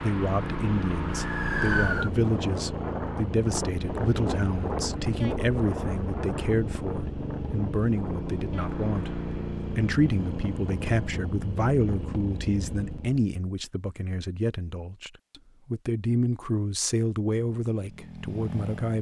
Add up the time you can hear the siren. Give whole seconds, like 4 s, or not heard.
2 s.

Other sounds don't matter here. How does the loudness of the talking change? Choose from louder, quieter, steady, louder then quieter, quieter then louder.
steady.